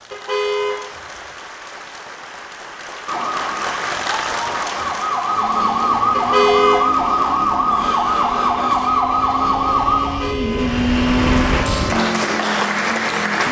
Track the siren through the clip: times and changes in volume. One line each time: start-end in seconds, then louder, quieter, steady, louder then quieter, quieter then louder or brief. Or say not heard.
3.0-10.3 louder.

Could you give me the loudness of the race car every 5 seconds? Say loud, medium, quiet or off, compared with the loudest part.
off, medium, loud.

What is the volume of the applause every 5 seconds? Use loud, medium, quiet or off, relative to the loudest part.
medium, quiet, loud.